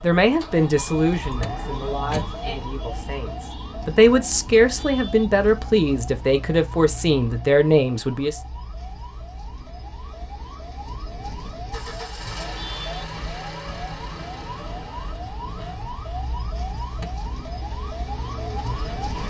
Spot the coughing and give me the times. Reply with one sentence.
You can't hear the coughing here.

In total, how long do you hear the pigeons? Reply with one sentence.
You can't hear the pigeons here.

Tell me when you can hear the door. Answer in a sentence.
The door can be heard from 1.4 to 2.4 s and from 17.0 to 17.8 s.